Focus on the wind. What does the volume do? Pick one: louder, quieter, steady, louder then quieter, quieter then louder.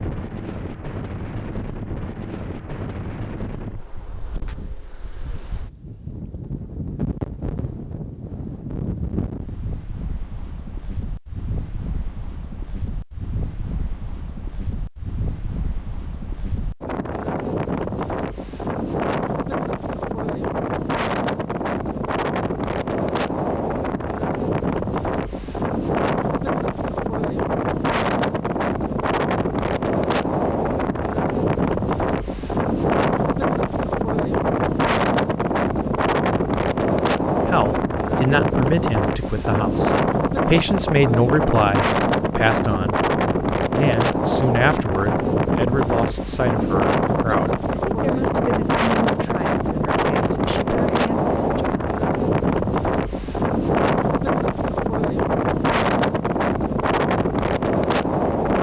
louder.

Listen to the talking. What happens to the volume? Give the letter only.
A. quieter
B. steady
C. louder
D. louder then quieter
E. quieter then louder
A.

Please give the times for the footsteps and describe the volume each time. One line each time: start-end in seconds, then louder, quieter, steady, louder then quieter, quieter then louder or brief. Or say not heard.
not heard.